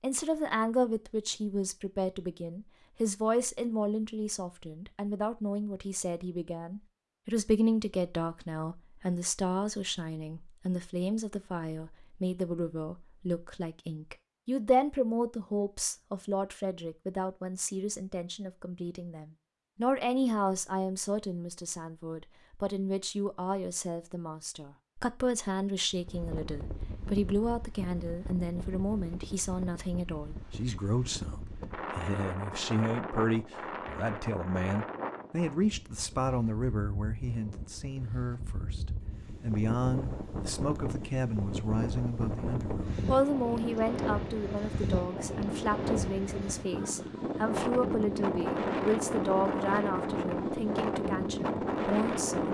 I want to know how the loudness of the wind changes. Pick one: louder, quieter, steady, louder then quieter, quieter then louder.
louder.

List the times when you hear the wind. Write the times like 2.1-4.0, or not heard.
25.9-52.5.